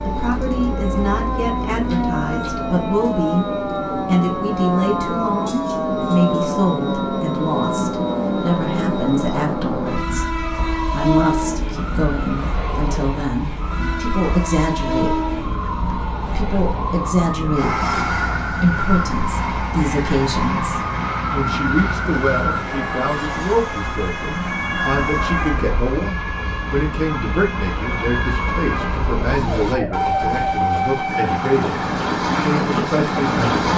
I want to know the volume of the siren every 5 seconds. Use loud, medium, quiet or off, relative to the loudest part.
loud, loud, medium, loud, loud, loud, medium.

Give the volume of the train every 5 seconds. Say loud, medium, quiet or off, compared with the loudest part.
medium, loud, medium, medium, medium, medium, loud.